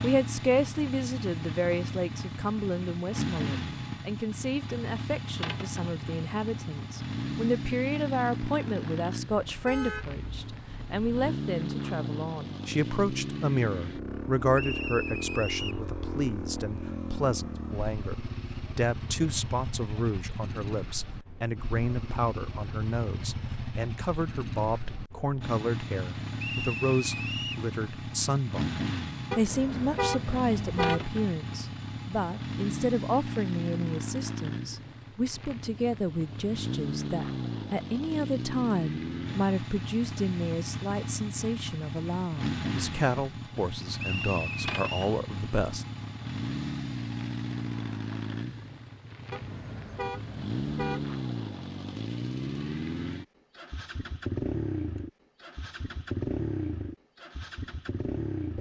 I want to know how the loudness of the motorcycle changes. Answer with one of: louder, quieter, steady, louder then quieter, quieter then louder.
steady.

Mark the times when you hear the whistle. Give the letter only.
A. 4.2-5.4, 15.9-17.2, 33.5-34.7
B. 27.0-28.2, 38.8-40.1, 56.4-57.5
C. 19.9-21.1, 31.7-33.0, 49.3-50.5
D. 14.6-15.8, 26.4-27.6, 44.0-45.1
D.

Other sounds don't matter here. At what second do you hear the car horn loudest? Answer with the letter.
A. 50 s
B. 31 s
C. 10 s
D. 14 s
B.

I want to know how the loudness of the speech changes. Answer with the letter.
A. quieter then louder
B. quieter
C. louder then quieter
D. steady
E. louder
D.